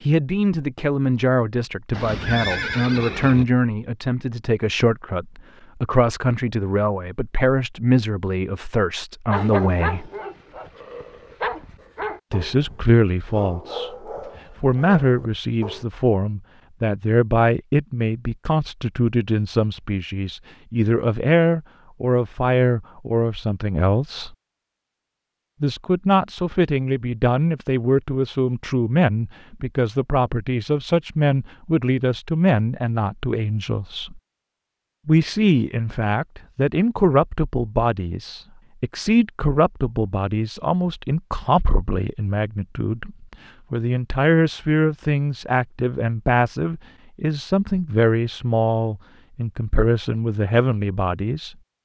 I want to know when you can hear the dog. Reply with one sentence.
The dog can be heard from 9.3 to 15.8 s.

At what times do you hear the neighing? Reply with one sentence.
The neighing can be heard from 1.9 to 3.5 s.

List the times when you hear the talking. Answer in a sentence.
You can hear the talking from 0.0 to 10.1 s, from 12.3 to 13.9 s, from 14.6 to 24.4 s, from 25.6 to 34.2 s and from 35.0 to 51.5 s.